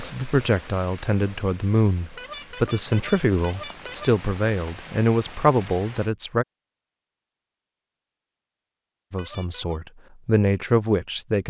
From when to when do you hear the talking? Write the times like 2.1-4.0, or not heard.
0.0-6.5, 9.1-11.4.